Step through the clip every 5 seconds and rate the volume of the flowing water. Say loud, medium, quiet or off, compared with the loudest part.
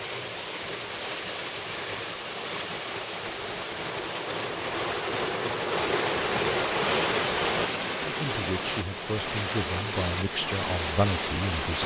medium, loud, loud.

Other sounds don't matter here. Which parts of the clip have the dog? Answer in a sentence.
The dog can't be heard in this clip.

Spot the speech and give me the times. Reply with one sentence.
You can hear the speech from 8.0 to 11.8 s.